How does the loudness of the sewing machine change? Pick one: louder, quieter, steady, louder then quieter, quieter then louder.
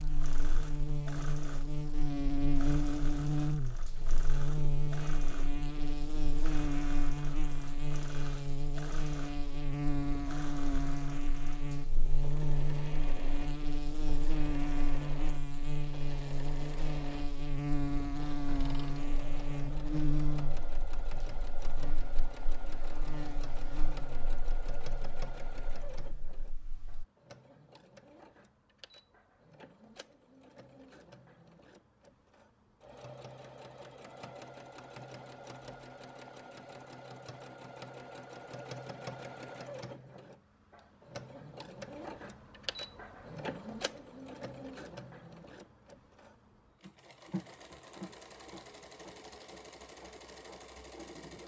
steady.